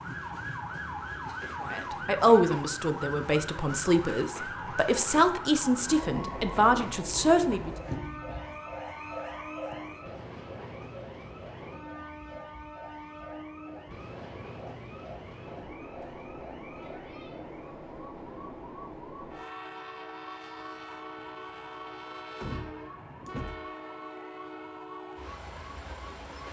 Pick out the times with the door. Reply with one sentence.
The door can be heard from 22.4 to 23.7 s.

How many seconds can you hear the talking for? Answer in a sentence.
You can hear the talking for 6 seconds altogether.